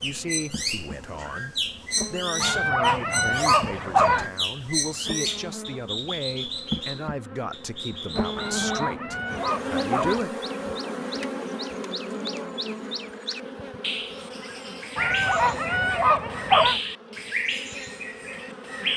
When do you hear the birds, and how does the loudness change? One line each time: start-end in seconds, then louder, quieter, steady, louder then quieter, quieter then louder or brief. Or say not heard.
0.0-18.9 quieter then louder.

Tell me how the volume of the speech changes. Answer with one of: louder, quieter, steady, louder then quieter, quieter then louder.
steady.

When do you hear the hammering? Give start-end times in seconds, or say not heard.
not heard.